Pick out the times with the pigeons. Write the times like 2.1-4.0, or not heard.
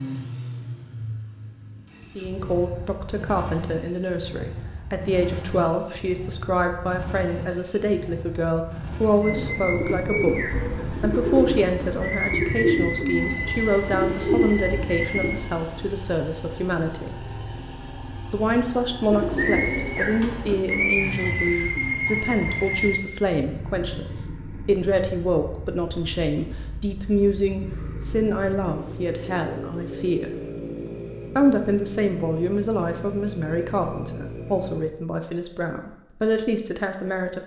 9.2-15.4, 19.1-23.0.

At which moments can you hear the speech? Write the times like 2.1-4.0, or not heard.
2.1-17.2, 18.3-30.4, 31.4-37.4.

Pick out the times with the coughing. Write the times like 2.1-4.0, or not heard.
not heard.